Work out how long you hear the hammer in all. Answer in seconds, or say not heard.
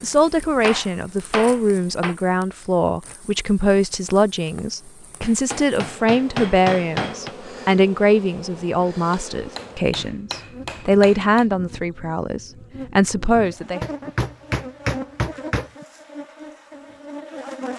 8 s.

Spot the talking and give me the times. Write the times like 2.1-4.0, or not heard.
0.0-13.8.